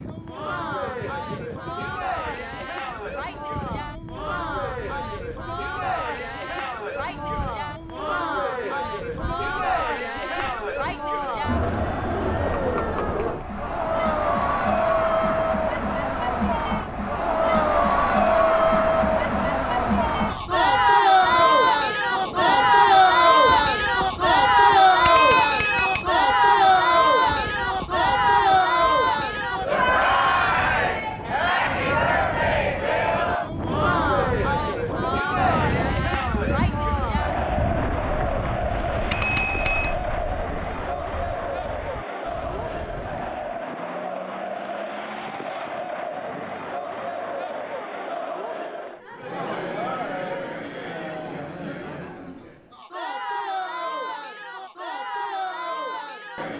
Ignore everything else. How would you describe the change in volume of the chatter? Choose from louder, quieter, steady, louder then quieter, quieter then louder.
louder then quieter.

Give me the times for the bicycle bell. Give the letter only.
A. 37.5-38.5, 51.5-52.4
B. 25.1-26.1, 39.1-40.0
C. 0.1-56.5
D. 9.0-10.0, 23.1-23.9
B.